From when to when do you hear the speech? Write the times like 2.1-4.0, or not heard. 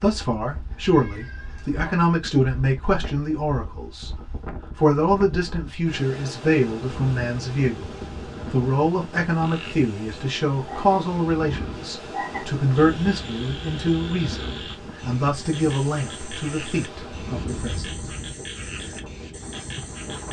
0.0-4.2, 4.8-17.9.